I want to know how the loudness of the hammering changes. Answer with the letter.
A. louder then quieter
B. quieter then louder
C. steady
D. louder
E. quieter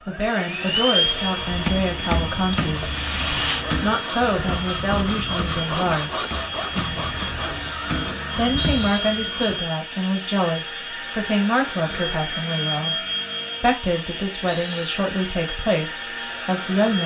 B.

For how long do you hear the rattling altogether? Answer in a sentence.
The rattling can be heard for 2 seconds in total.